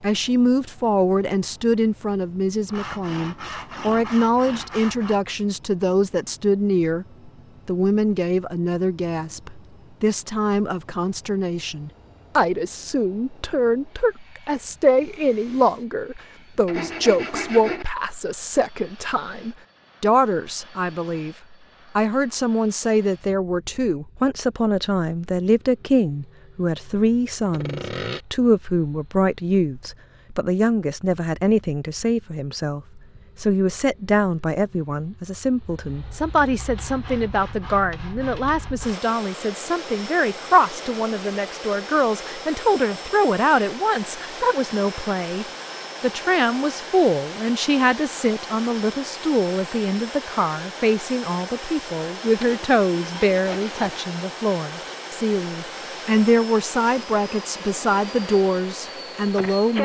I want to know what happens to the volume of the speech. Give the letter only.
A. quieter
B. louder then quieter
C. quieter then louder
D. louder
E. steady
E.